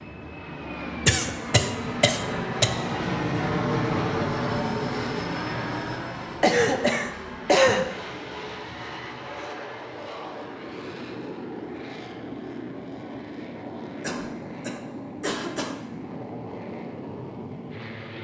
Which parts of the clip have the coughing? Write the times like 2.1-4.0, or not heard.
1.1-2.7, 6.4-7.9, 14.0-15.8.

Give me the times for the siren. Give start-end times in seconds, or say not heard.
not heard.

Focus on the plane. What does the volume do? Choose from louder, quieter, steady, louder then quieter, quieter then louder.
quieter.